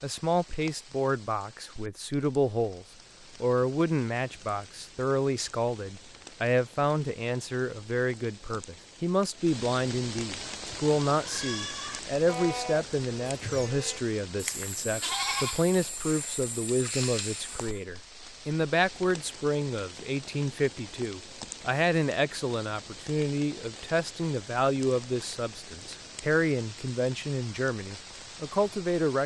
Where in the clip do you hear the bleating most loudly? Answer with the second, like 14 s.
15 s.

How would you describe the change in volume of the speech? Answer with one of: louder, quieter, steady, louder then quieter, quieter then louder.
steady.